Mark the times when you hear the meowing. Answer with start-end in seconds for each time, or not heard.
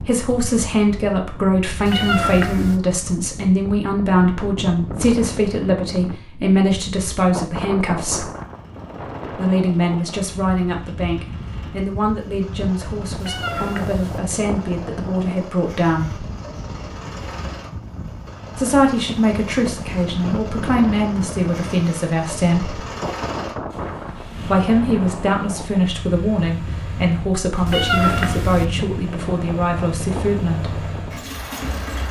1.9-2.8, 13.2-14.2, 27.6-28.6.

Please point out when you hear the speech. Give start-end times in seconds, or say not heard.
0.1-8.3, 9.3-16.2, 18.6-22.8, 24.4-30.9.